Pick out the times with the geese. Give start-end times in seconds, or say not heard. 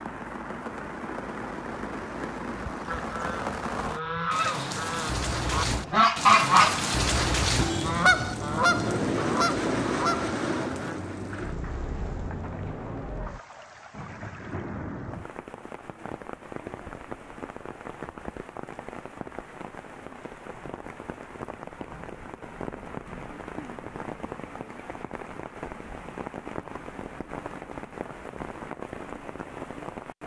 2.9-10.9.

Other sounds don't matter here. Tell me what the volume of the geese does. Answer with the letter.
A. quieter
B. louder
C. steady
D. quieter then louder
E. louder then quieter
E.